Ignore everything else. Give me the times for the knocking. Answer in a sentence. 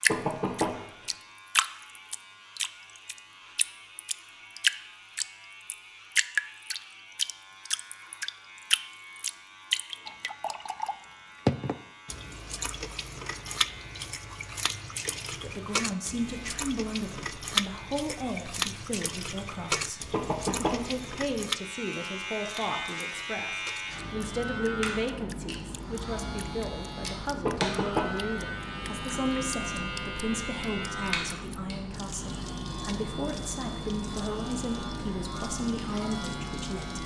The knocking can be heard from 0.1 to 0.8 s, from 20.1 to 20.9 s and from 27.4 to 28.2 s.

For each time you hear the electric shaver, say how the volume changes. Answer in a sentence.
The electric shaver can be heard from 0.0 to 37.0 s, getting louder.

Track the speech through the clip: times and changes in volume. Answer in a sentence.
You can hear the speech from 15.3 to 37.0 s, at a steady volume.